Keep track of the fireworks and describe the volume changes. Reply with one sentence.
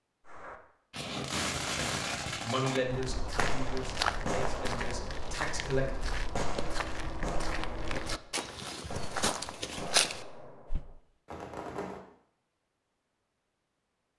The loudness of the fireworks goes down.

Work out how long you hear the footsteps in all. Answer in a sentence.
You can hear the footsteps for 8 seconds altogether.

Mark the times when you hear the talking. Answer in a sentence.
The talking can be heard from 2.4 to 5.9 s.